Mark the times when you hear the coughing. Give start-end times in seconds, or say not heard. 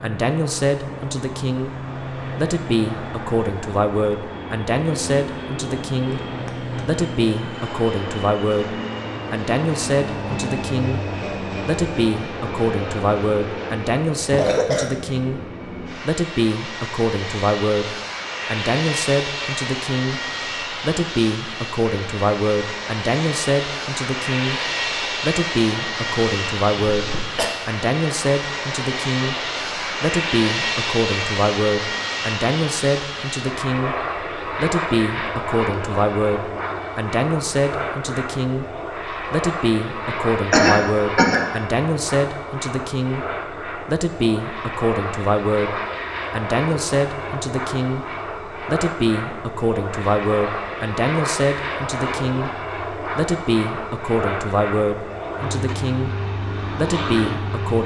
14.2-14.9, 26.9-27.5, 40.5-41.4.